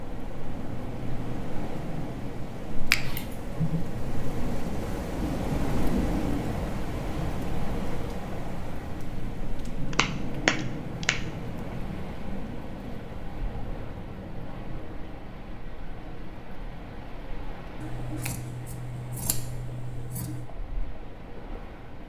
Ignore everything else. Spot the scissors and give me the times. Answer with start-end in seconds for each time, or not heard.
3.0-3.9, 17.8-20.4.